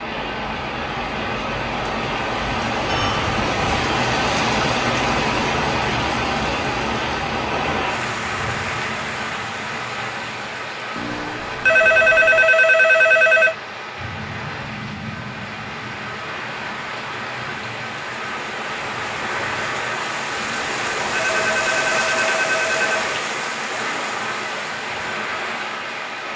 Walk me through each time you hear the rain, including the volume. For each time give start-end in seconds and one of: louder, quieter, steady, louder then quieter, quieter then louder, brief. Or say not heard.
0.0-26.3 quieter then louder.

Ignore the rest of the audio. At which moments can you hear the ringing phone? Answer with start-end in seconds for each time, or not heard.
2.9-3.7, 10.9-13.6, 20.4-22.9.